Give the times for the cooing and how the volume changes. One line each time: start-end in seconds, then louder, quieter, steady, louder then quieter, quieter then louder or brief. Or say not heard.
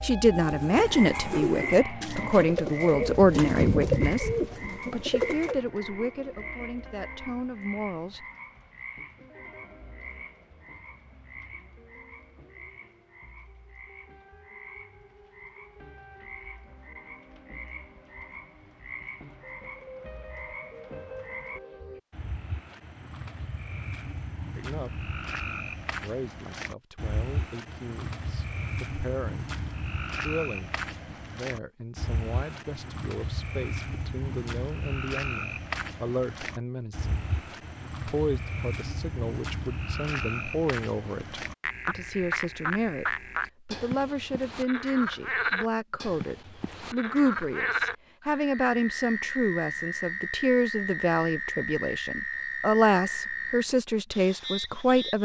0.3-5.5 louder then quieter.